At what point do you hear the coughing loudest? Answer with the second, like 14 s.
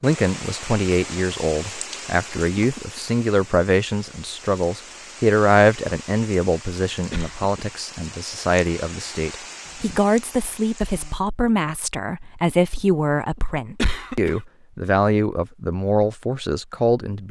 14 s.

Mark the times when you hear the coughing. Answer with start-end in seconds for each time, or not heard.
2.4-3.0, 7.1-7.7, 13.8-14.4.